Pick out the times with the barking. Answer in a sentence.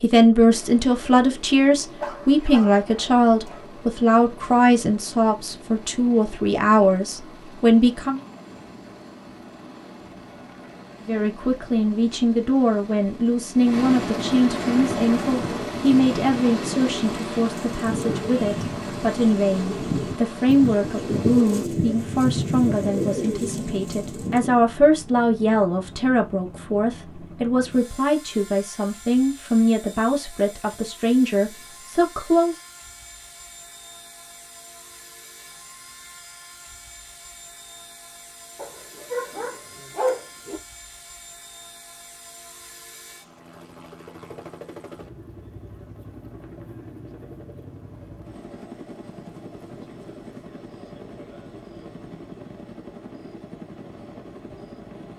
You can hear the barking from 2.0 to 3.6 s and from 38.5 to 40.6 s.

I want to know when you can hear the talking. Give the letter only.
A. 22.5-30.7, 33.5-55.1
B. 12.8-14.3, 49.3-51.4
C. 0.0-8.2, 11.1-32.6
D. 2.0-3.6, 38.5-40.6
C.